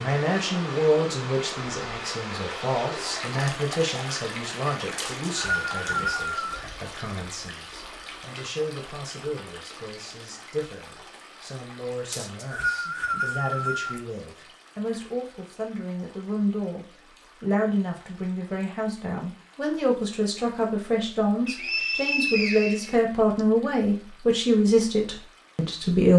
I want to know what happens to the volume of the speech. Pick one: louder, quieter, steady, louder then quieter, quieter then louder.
quieter then louder.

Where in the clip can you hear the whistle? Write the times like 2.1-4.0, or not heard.
5.0-6.6, 12.1-14.0, 21.4-23.4.